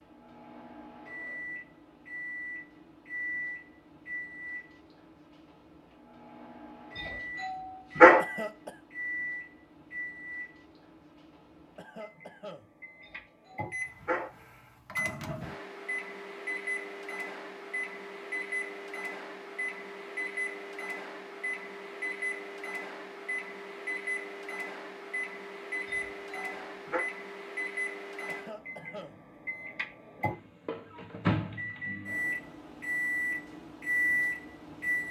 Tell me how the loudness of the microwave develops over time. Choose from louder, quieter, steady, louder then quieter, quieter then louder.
louder.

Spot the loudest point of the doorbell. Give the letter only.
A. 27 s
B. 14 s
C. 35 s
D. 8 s
D.